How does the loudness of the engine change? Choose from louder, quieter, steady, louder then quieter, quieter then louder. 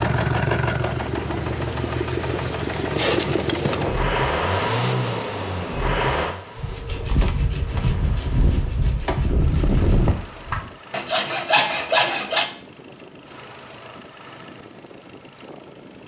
quieter.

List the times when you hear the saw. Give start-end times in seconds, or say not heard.
6.5-12.5.